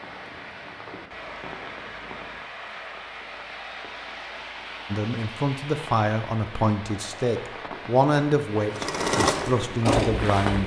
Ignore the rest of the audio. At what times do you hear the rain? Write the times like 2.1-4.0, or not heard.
0.0-10.6.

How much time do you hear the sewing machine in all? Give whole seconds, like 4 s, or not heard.
2 s.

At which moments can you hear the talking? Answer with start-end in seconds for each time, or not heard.
4.9-10.6.